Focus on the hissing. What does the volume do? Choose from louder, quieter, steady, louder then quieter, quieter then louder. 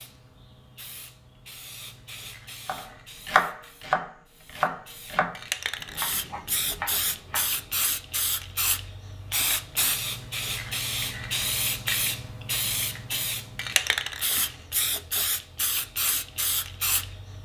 louder.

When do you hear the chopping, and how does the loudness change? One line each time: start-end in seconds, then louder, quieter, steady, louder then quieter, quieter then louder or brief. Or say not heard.
2.6-7.9 quieter.